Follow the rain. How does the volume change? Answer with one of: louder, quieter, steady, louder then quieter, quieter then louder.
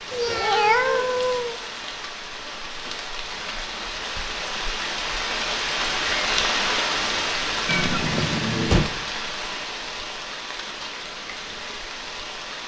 louder then quieter.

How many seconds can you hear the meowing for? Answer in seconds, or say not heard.
3 s.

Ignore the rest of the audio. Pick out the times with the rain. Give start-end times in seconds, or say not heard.
0.0-12.6.